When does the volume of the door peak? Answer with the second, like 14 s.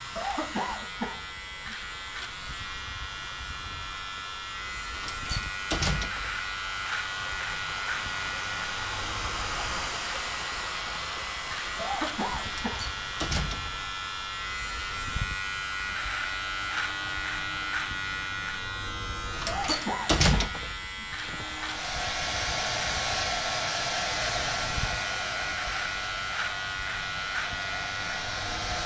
20 s.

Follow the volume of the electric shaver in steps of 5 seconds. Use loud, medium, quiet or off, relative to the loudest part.
medium, loud, loud, loud, loud, loud.